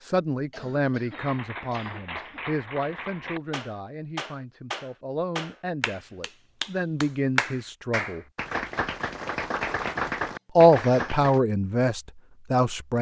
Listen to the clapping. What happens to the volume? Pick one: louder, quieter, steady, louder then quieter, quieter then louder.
louder.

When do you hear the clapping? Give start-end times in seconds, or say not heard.
1.1-11.4.